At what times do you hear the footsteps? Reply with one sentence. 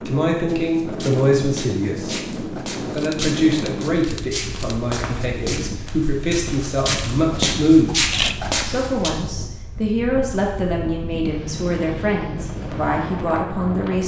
You can hear the footsteps from 0.5 to 9.1 s.